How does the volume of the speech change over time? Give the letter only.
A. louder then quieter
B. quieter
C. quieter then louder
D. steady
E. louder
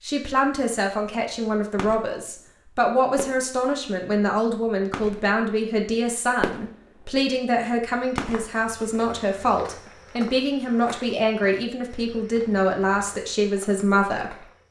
D.